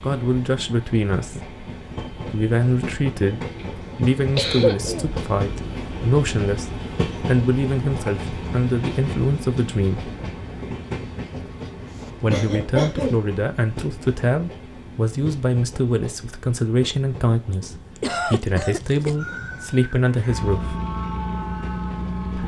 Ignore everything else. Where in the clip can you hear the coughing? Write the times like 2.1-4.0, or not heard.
3.5-5.2, 12.3-13.2, 17.9-19.1.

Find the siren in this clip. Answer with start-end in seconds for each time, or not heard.
19.1-22.4.